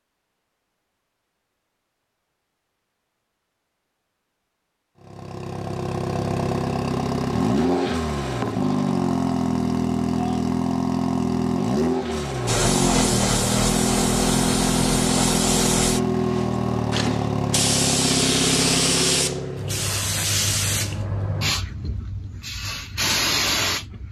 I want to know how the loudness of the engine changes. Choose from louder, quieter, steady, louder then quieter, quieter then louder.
steady.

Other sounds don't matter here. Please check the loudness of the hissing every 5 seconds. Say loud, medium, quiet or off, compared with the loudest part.
off, off, loud, loud, loud.